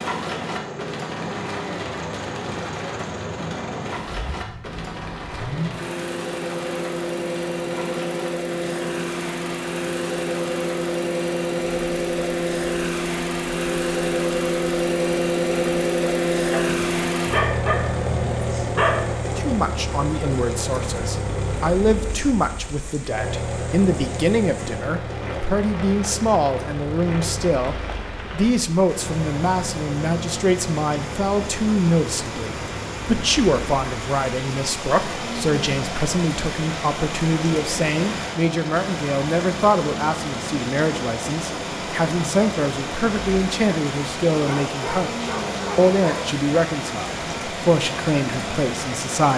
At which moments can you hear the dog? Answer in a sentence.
The dog can be heard from 16.5 to 19.1 s and from 44.3 to 46.2 s.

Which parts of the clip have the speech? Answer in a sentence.
The speech can be heard from 19.4 to 49.3 s.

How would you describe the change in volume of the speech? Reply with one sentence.
The volume of the speech stays about the same.